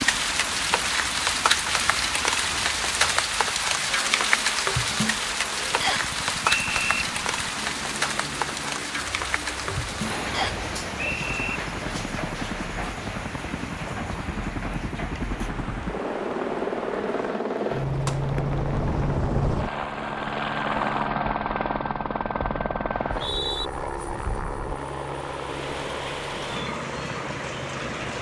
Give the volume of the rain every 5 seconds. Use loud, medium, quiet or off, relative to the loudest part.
loud, loud, medium, quiet, quiet, medium.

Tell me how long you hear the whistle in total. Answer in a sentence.
The whistle can be heard for 3 seconds in total.